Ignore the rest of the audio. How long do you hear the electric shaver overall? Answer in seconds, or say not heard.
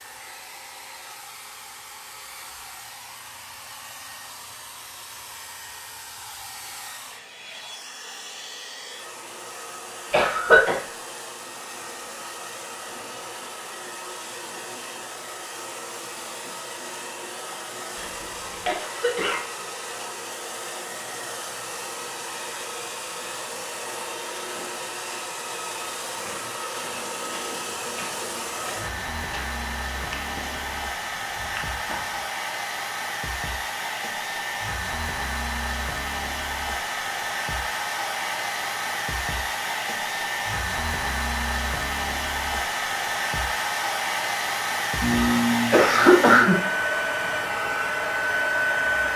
not heard.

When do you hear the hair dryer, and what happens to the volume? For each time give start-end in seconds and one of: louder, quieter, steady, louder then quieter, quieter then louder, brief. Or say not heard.
0.0-49.1 louder.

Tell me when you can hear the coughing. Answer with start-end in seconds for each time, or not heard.
10.1-10.8, 17.9-19.4, 45.0-46.5.